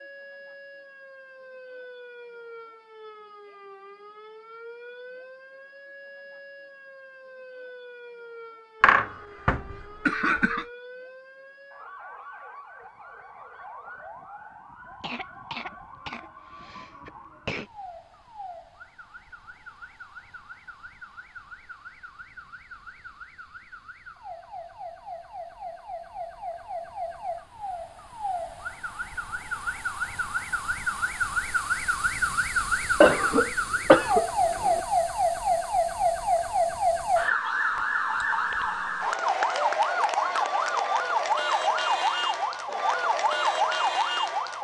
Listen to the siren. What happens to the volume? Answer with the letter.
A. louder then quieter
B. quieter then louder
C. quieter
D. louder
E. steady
D.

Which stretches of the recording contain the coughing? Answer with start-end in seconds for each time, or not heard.
8.8-10.7, 15.0-17.7, 33.0-34.8.